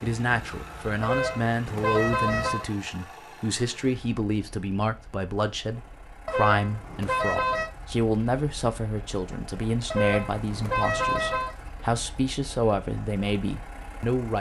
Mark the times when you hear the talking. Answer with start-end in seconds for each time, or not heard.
0.0-14.3.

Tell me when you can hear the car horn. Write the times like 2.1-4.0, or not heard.
1.0-2.6, 6.2-7.7, 9.9-11.6.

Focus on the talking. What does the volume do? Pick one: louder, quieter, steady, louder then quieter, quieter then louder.
steady.